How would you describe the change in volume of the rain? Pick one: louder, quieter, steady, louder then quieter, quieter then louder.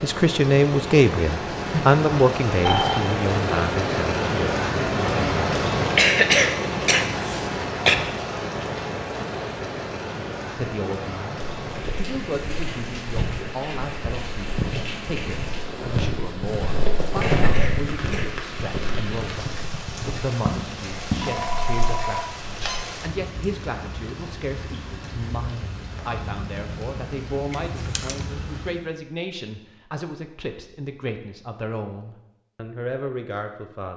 quieter.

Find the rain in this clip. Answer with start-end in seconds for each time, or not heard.
0.0-28.9.